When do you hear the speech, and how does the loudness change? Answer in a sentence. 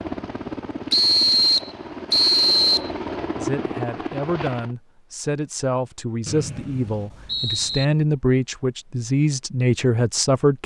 You can hear the speech from 3.4 to 10.6 s, getting louder.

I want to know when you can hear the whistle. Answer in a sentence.
You can hear the whistle from 0.9 to 2.9 s and from 6.2 to 7.8 s.